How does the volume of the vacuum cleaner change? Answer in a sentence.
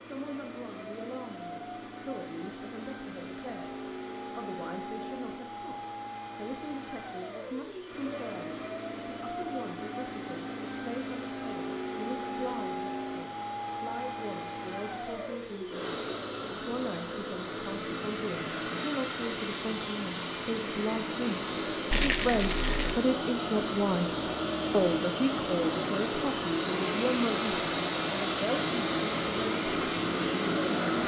The loudness of the vacuum cleaner goes up.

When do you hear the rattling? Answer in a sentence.
You can hear the rattling from 21.9 to 22.9 s.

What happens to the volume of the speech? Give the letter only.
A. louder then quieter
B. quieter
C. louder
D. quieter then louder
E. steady
C.